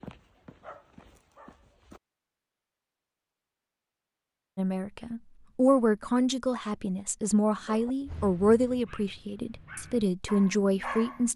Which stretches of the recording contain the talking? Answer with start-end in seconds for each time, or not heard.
4.5-11.3.